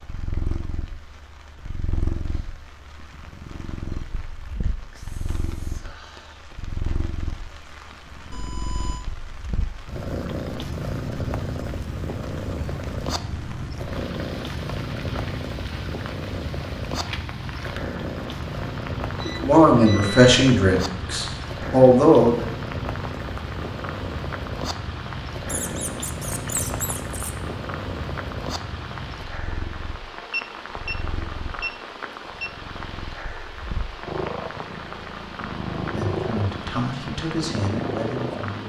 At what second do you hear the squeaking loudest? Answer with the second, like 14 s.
27 s.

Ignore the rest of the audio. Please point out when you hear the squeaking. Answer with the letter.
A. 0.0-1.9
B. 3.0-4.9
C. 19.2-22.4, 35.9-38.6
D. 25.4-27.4
D.